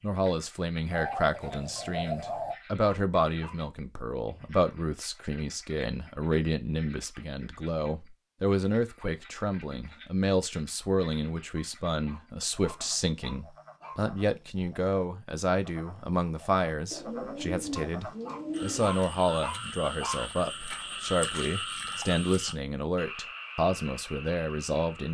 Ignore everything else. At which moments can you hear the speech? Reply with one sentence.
The speech can be heard from 0.0 to 25.0 s.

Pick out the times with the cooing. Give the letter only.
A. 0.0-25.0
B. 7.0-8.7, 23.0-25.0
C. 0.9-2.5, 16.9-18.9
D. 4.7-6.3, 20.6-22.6
C.